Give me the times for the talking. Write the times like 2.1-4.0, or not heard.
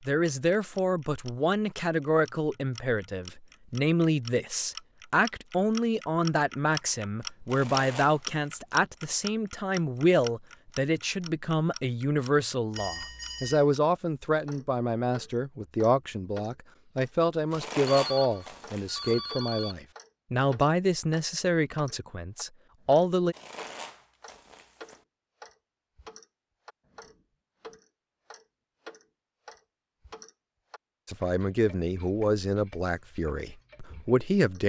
0.1-23.4, 31.1-34.6.